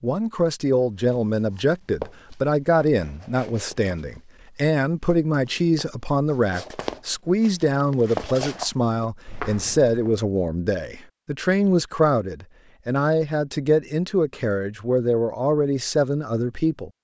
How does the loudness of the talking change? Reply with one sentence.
The volume of the talking stays about the same.